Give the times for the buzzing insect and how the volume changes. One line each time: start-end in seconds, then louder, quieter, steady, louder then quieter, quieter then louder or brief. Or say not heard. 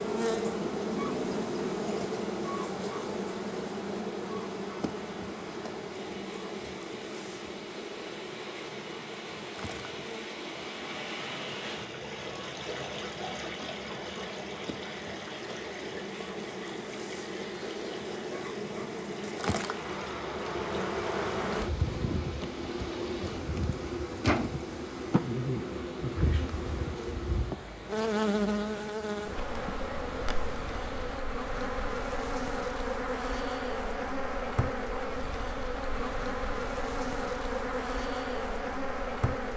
0.0-39.5 quieter then louder.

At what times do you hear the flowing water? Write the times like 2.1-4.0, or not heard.
0.0-31.2.